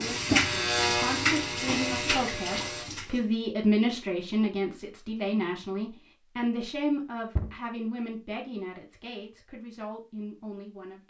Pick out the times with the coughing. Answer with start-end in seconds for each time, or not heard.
not heard.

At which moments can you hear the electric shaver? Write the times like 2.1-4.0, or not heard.
0.0-2.9.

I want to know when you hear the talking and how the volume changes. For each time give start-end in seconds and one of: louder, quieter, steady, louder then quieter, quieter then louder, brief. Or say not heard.
0.0-11.0 louder then quieter.